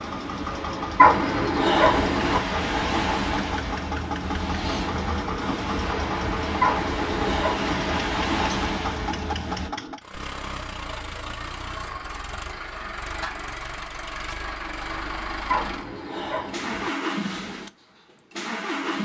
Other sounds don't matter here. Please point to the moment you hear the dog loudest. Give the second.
1 s.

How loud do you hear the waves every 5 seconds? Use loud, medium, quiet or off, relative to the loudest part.
loud, loud, off, off.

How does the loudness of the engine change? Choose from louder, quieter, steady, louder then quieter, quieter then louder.
steady.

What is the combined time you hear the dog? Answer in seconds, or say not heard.
4 s.